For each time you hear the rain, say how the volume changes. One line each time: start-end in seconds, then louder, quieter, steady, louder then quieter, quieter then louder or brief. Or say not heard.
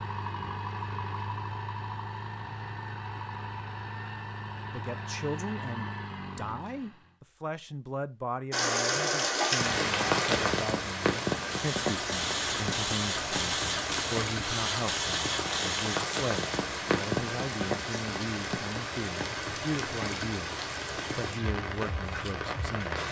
8.5-23.0 quieter.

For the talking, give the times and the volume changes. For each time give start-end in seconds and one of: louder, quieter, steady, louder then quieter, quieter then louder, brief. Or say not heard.
4.7-23.0 steady.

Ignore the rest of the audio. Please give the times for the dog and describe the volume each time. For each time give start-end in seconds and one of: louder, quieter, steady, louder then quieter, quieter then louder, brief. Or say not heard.
not heard.